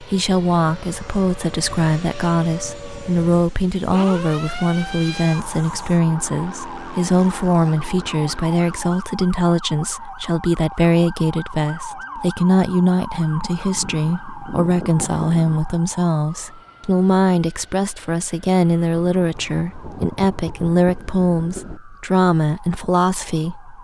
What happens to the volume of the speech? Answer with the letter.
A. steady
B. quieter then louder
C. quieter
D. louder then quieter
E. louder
A.